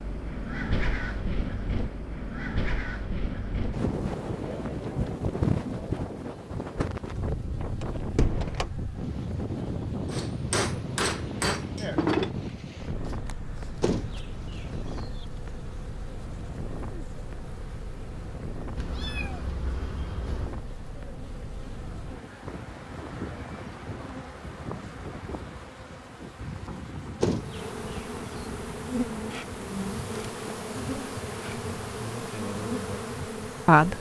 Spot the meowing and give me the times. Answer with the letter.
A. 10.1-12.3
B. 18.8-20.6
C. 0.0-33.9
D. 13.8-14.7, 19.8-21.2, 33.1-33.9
B.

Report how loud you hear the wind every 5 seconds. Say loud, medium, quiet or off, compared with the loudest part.
loud, loud, loud, medium, medium, medium, medium.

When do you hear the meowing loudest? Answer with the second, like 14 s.
19 s.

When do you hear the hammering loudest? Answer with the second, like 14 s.
12 s.